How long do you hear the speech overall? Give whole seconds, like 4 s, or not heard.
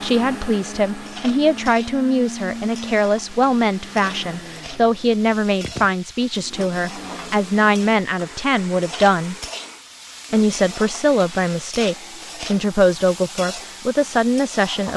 14 s.